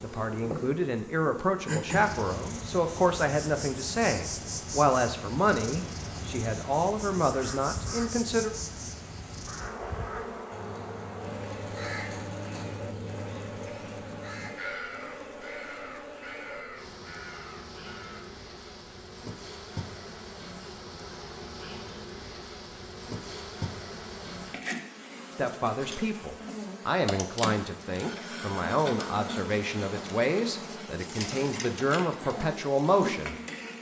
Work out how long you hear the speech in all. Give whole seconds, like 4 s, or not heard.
17 s.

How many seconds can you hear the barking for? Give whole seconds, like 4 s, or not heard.
not heard.